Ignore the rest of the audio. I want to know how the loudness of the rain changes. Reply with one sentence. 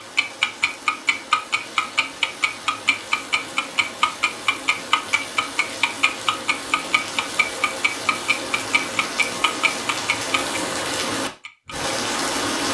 The loudness of the rain goes up.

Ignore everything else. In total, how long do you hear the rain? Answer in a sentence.
The rain can be heard for 13 seconds in total.